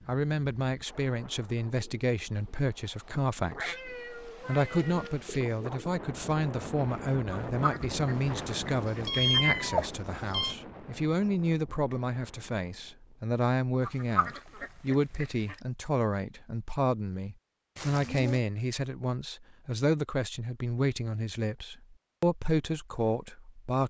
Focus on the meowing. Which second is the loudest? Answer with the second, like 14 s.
9 s.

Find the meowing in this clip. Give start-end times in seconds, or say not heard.
3.5-5.2, 8.2-10.6, 17.8-18.4.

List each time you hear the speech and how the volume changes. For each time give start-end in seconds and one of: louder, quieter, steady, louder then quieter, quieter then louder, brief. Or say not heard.
0.1-23.8 steady.